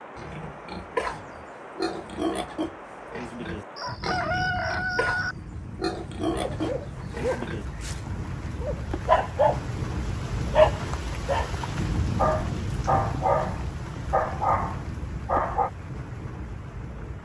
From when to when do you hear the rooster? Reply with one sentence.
The rooster can be heard from 3.8 to 5.3 s.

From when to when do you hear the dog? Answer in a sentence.
The dog can be heard from 6.3 to 9.7 s and from 10.5 to 15.7 s.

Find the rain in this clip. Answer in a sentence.
The rain can be heard from 0.0 to 17.2 s.